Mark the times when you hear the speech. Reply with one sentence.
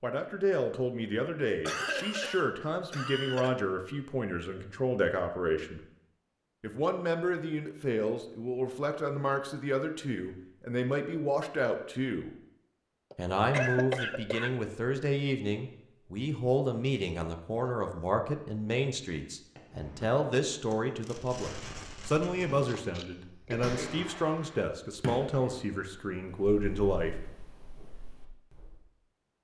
You can hear the speech from 0.0 to 5.8 s, from 6.6 to 12.3 s and from 13.2 to 27.1 s.